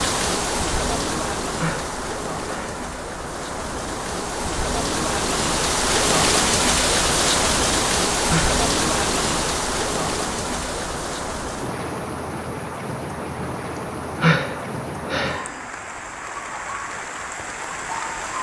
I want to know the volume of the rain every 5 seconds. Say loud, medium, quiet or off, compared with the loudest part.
medium, loud, medium, medium.